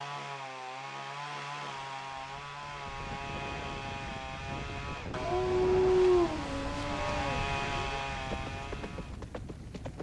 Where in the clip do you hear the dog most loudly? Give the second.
6 s.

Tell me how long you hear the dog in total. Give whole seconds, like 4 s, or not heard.
3 s.